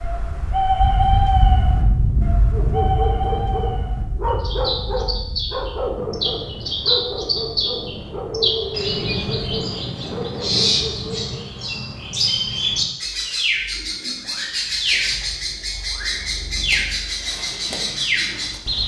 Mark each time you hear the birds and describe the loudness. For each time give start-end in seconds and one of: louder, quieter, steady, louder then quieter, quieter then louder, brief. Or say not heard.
0.0-18.8 steady.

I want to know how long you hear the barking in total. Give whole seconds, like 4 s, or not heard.
9 s.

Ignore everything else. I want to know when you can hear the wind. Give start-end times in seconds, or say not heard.
0.0-10.8.